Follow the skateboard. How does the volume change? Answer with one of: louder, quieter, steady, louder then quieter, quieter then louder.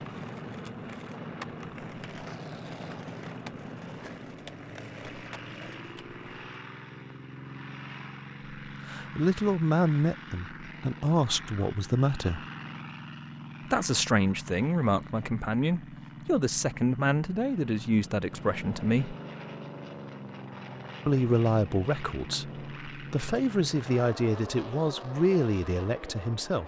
steady.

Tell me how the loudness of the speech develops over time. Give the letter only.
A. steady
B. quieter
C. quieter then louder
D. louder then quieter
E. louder
A.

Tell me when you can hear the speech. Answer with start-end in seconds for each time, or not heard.
8.7-12.4, 13.7-19.1, 21.1-26.6.